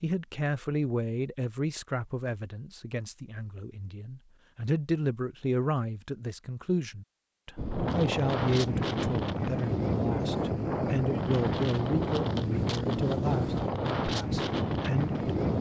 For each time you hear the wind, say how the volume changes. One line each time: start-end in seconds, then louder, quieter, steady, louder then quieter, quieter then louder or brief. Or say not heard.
7.5-15.5 steady.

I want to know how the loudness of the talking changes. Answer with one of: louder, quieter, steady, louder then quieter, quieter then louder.
steady.